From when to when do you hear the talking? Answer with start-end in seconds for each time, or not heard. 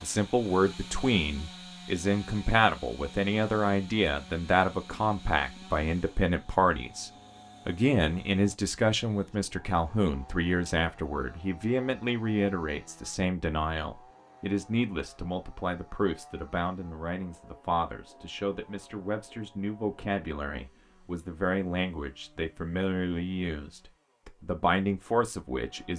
0.0-25.9.